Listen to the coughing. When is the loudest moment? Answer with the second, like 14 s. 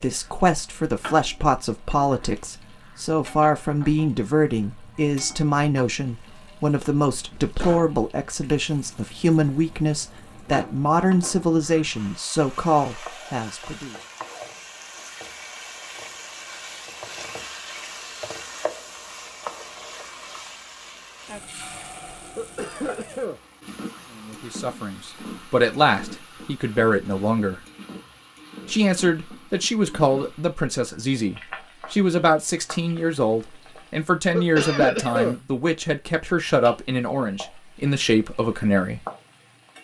35 s.